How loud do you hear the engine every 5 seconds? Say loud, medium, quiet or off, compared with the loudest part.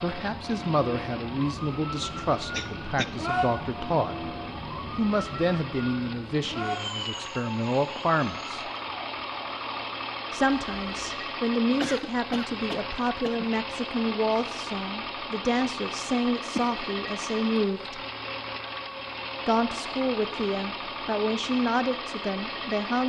medium, loud, loud, loud, loud.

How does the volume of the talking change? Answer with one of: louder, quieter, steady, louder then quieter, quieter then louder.
steady.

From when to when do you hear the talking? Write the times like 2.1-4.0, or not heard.
0.0-4.3, 5.0-8.7, 10.3-18.0, 19.4-23.0.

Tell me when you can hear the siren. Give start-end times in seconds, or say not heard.
0.0-11.1.